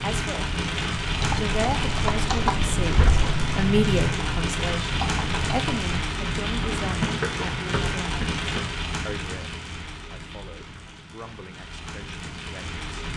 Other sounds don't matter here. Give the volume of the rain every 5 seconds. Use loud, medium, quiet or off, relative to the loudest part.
loud, loud, medium.